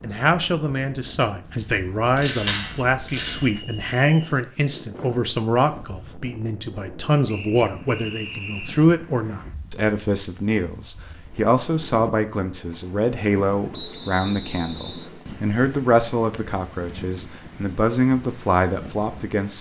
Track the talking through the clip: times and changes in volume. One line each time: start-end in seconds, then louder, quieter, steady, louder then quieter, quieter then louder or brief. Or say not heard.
0.0-19.5 steady.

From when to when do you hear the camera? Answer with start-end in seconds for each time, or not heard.
2.1-3.5.